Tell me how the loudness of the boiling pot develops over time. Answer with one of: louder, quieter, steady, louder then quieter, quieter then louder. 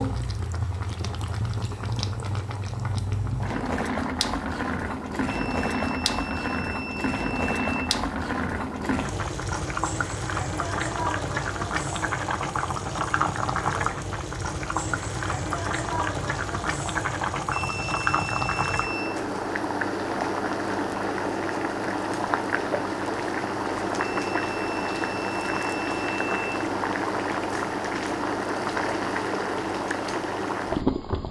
steady.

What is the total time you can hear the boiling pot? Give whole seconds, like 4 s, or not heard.
31 s.